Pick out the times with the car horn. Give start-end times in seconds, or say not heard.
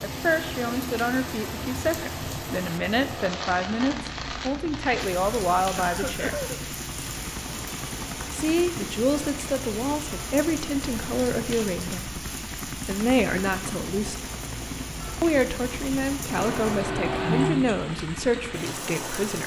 16.4-17.6.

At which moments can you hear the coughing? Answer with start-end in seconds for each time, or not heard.
5.8-6.6.